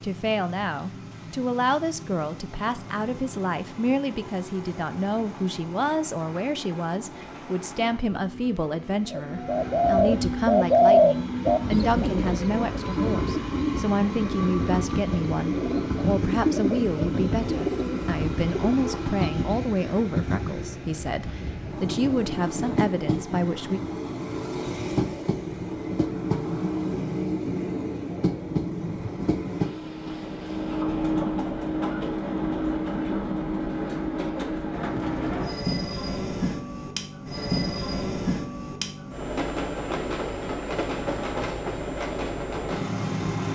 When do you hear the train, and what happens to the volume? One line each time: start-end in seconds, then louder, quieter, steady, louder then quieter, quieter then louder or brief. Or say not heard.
0.0-43.5 louder.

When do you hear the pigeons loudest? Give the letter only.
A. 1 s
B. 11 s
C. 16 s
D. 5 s
B.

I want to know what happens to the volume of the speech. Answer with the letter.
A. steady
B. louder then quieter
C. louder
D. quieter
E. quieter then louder
A.